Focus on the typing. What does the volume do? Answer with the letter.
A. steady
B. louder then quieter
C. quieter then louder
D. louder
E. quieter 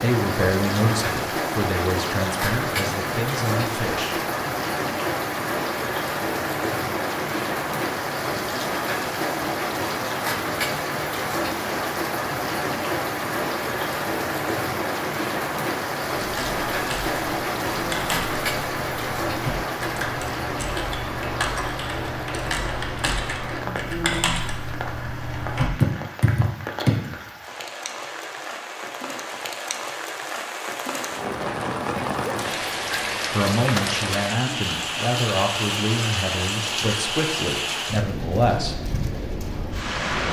D.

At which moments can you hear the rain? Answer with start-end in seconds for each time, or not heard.
0.0-40.2.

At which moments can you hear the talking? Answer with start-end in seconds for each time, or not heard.
0.0-4.2, 33.3-38.9.